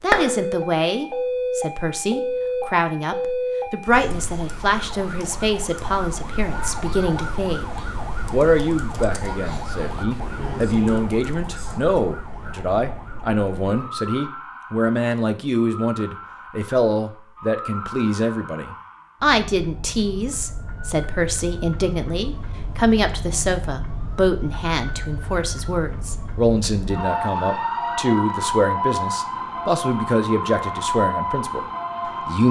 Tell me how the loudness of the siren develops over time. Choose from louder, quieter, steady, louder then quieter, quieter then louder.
quieter then louder.